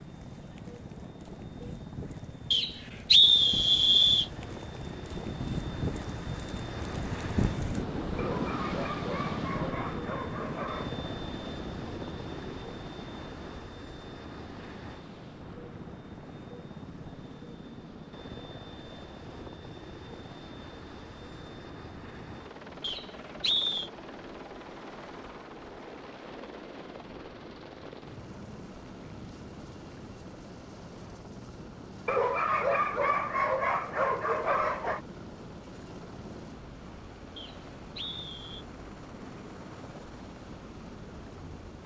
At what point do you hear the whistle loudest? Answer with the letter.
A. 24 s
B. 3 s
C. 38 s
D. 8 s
B.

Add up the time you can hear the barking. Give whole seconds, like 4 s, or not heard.
6 s.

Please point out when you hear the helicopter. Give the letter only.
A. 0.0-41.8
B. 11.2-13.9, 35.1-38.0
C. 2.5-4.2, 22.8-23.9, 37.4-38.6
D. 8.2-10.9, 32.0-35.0
A.